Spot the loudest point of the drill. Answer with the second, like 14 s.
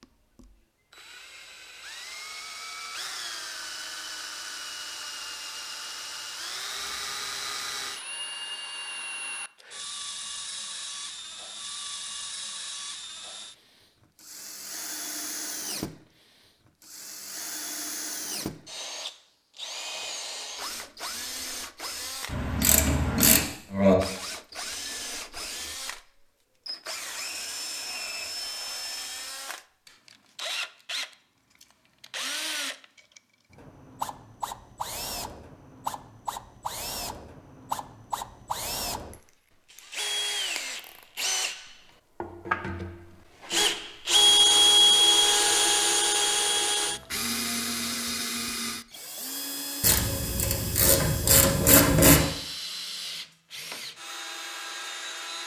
45 s.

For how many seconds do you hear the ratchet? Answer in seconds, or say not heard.
4 s.